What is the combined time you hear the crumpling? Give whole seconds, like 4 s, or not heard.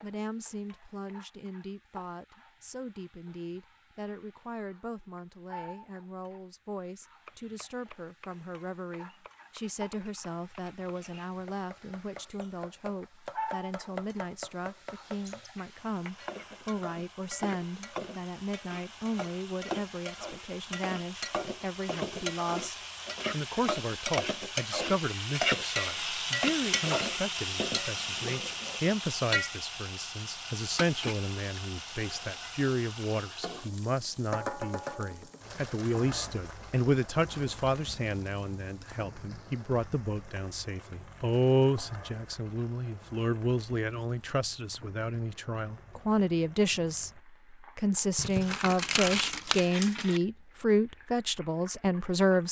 2 s.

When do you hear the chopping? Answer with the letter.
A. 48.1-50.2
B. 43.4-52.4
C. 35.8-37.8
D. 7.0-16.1
D.